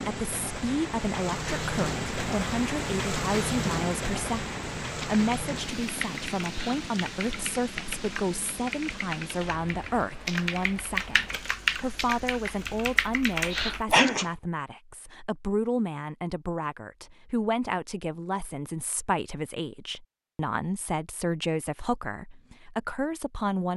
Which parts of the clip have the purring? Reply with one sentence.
The purring can't be heard in this clip.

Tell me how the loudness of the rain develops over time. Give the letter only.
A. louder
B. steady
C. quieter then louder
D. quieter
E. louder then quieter
D.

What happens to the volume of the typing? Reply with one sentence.
The volume of the typing goes up.